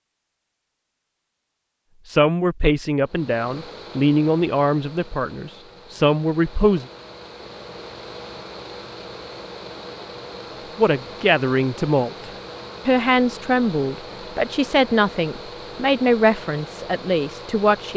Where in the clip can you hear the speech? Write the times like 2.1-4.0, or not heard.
2.0-6.8, 10.8-17.9.